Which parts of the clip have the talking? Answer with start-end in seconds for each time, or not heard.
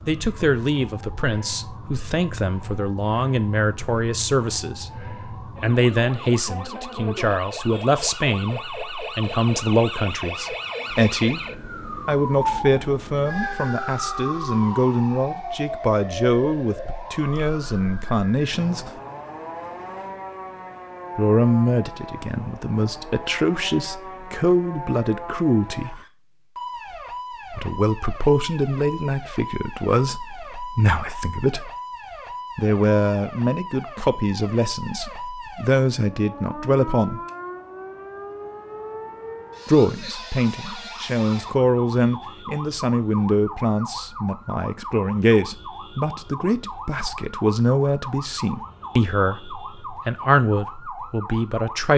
0.1-18.9, 21.1-25.9, 27.5-31.7, 32.5-37.2, 39.6-51.9.